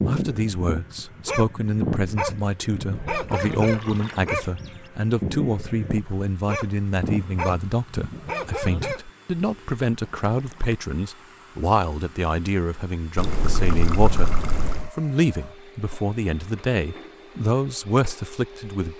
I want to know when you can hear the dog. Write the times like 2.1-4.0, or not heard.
0.0-9.0.